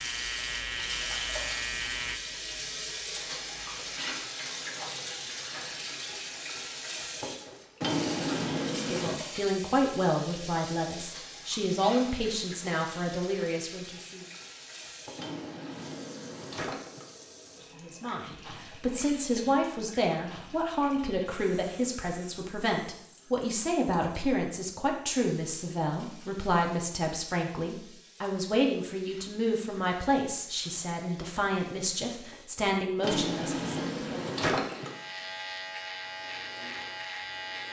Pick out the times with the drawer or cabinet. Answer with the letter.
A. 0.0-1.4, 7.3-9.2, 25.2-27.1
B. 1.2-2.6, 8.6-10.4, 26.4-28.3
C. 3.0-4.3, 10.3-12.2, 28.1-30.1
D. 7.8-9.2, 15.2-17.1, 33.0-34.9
D.